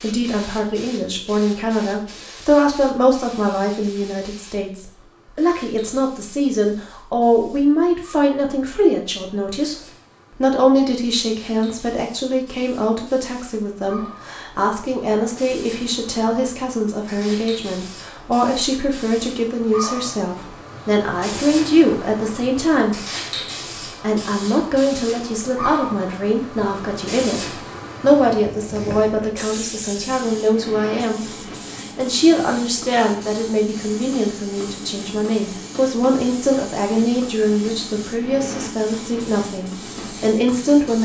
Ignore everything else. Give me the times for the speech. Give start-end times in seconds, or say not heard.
0.0-9.8, 10.4-23.0, 23.9-41.0.